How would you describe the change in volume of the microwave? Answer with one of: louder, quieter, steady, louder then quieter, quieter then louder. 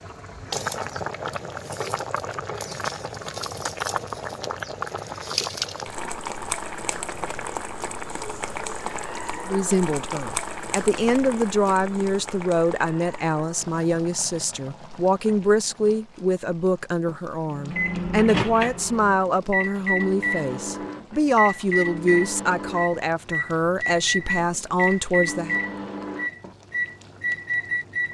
steady.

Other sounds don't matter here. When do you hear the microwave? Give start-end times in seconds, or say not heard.
17.4-28.1.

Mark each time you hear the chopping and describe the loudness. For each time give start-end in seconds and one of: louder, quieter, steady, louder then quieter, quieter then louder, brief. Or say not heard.
not heard.